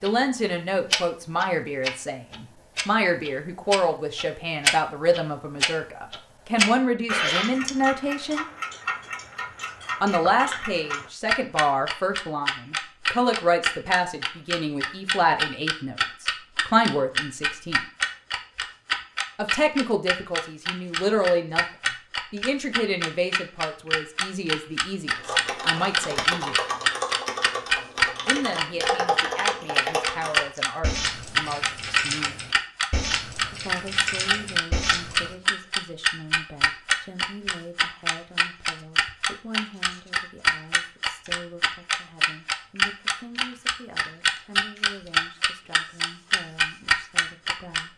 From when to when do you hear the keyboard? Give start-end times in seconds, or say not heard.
25.1-35.4.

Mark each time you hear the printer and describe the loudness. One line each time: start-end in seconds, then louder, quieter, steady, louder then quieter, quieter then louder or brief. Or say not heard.
not heard.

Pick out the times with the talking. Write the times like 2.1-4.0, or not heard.
0.0-8.4, 10.0-17.8, 19.4-21.6, 22.3-26.6, 28.2-32.4, 33.5-47.9.